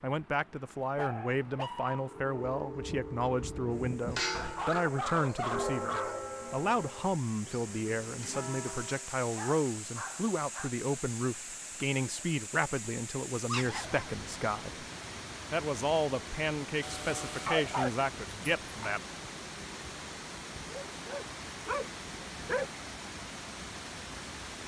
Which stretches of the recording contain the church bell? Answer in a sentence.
You can hear the church bell from 2.0 to 9.1 s.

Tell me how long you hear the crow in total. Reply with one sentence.
The crow can't be heard in this clip.